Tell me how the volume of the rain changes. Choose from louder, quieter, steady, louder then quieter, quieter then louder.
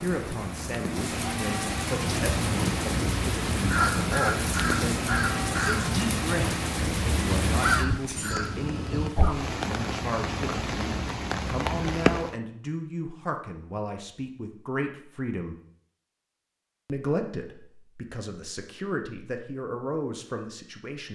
steady.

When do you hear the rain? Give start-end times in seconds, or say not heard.
0.0-12.4.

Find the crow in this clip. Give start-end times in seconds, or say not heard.
2.0-9.1.